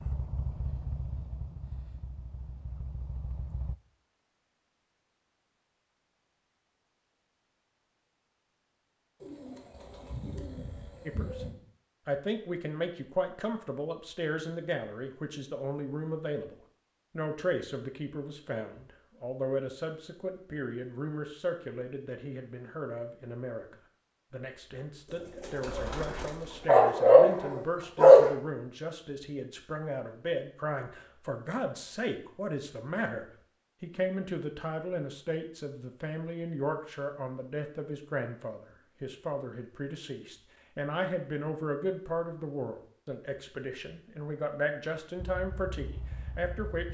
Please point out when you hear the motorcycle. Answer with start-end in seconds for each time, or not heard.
0.0-3.8, 45.1-46.8.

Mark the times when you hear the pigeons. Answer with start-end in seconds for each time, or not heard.
9.2-11.6, 25.1-26.7.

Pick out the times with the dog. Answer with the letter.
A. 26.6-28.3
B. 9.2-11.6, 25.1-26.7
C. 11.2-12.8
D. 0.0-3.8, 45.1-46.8
A.